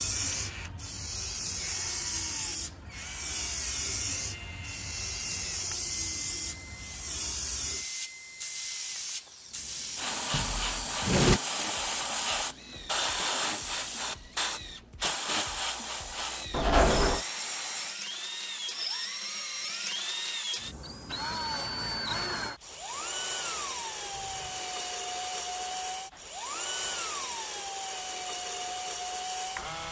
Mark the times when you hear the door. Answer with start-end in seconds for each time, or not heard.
10.3-11.4, 16.5-17.2.